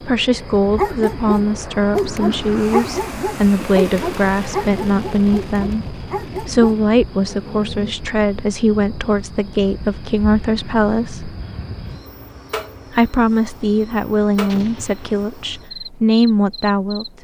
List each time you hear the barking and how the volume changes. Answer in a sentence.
You can hear the barking from 0.6 to 8.0 s, getting quieter.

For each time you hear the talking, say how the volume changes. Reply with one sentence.
The talking can be heard from 0.0 to 11.3 s, at a steady volume; and from 12.9 to 17.1 s, getting quieter then louder.